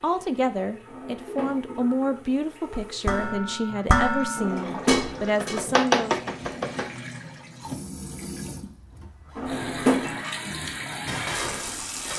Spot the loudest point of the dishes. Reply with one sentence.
The loudest moment of the dishes is at 4 seconds.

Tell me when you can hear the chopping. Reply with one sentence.
The chopping can be heard from 5.4 to 6.9 s.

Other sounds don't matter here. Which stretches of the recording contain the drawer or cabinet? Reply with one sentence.
The drawer or cabinet can be heard from 0.8 to 1.8 s, from 4.3 to 5.2 s and from 9.3 to 10.2 s.